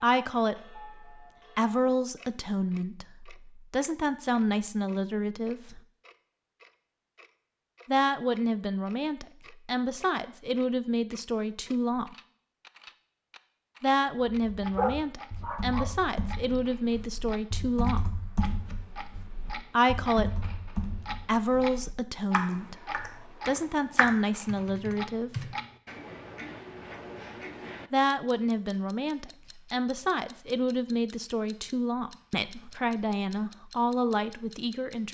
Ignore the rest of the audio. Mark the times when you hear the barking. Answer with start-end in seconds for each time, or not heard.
14.8-15.9.